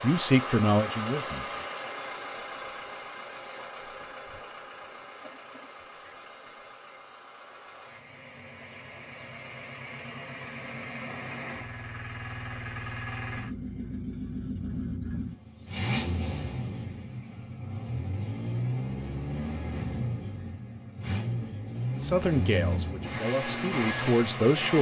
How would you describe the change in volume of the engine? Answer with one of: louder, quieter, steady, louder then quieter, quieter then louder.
quieter then louder.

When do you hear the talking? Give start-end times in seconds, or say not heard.
0.0-1.6, 21.9-24.7.